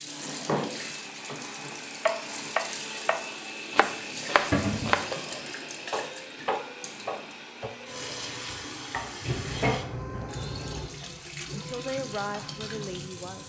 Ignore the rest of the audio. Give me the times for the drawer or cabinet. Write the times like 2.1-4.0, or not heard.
0.1-2.5, 4.5-5.0, 9.2-10.9.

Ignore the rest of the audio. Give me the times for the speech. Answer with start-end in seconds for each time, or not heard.
11.0-13.4.